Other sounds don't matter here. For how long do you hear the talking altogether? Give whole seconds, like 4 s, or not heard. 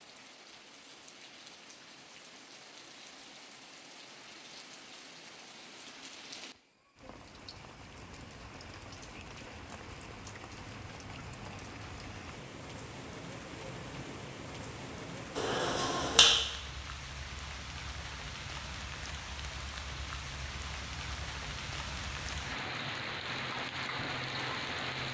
not heard.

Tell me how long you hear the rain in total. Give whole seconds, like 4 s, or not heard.
25 s.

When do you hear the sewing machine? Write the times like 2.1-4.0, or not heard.
not heard.